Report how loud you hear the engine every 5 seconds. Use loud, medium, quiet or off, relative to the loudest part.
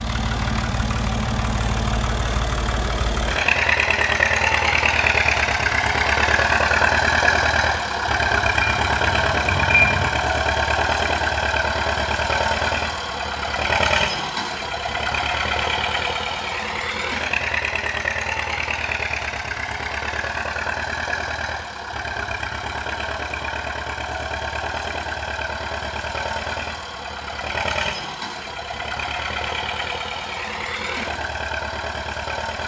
loud, loud, loud, medium, medium, medium, medium.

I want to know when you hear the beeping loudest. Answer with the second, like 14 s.
10 s.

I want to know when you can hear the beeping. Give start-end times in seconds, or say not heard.
8.6-10.1.